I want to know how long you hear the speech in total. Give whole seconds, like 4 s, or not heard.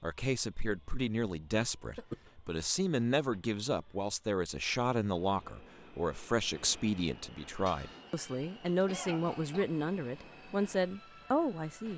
12 s.